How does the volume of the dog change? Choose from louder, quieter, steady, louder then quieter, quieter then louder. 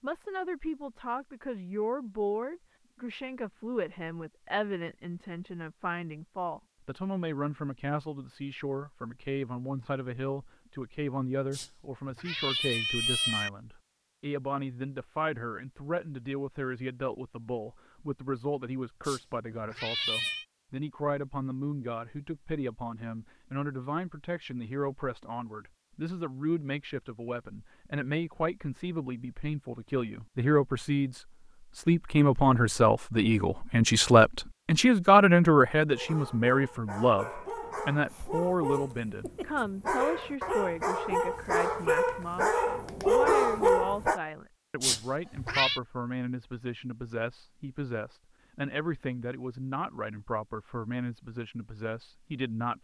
louder.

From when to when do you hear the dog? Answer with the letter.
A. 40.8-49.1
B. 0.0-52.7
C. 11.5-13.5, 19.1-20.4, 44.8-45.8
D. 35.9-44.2
D.